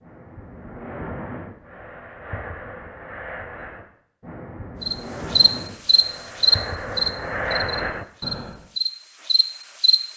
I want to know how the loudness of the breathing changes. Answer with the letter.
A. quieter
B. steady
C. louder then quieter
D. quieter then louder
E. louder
E.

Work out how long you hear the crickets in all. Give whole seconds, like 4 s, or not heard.
5 s.